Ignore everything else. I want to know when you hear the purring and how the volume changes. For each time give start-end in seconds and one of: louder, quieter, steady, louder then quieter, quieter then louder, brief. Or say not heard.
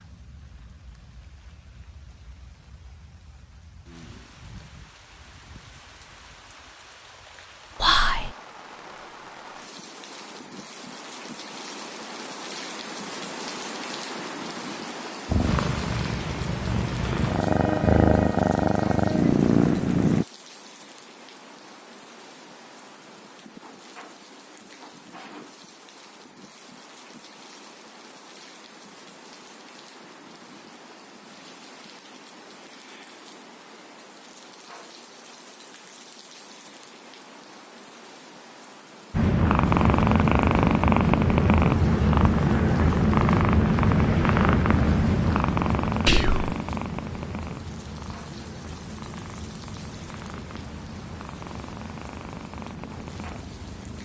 15.2-20.2 louder
39.1-54.0 quieter.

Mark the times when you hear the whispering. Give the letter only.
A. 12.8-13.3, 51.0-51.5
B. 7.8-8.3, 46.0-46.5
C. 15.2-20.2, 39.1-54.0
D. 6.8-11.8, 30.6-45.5
B.